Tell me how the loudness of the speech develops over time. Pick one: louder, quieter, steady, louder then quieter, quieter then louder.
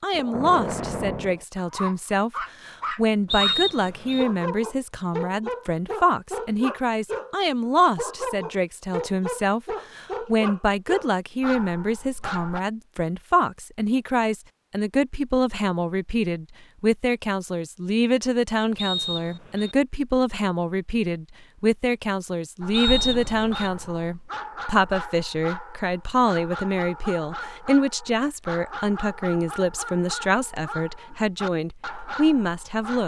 steady.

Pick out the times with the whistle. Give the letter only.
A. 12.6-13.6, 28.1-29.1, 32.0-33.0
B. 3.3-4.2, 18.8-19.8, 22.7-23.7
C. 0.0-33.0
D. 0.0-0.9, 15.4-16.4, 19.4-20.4
B.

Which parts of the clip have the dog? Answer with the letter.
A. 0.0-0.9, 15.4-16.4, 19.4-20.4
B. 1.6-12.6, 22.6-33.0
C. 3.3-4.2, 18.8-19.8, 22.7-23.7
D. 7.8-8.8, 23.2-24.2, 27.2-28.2
B.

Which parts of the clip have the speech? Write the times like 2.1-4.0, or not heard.
0.0-33.0.